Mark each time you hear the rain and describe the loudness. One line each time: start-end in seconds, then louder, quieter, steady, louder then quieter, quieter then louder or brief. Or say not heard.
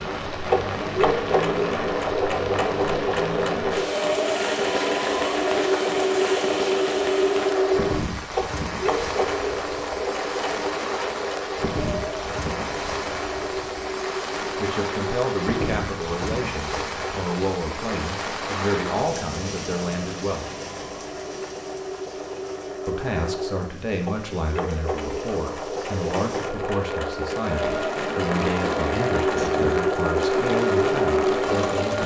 0.0-32.0 quieter then louder.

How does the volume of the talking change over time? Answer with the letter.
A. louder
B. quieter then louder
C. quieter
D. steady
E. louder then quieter
D.